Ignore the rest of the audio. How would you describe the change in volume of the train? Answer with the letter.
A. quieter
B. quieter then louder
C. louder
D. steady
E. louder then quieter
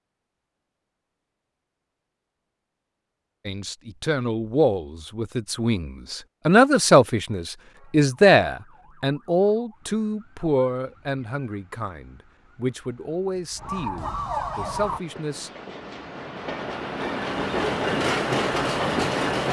C.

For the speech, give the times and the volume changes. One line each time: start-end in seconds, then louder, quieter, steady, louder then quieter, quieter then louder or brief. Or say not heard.
3.5-15.5 louder then quieter.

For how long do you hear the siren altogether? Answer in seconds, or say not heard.
7 s.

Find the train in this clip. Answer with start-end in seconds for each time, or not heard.
14.7-19.4.